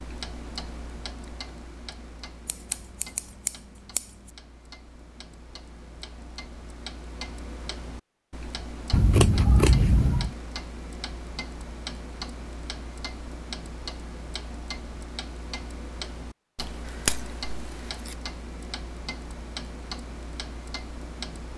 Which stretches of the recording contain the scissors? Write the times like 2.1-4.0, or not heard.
2.5-4.0, 8.9-10.3, 16.6-18.1.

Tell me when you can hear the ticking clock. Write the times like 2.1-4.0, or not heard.
0.0-21.5.